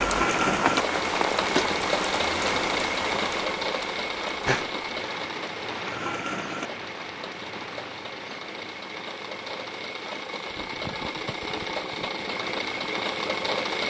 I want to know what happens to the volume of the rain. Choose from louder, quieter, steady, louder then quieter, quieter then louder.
quieter.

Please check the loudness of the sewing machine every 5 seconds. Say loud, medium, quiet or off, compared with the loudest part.
loud, medium, loud.